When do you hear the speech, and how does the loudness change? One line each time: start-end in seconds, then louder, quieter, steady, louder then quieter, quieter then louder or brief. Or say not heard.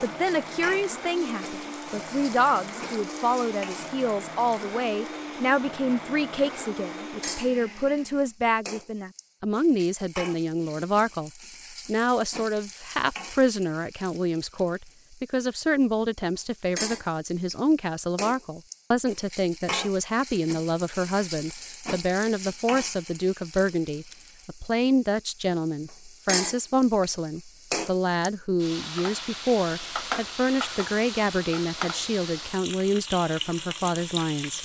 0.0-34.6 steady.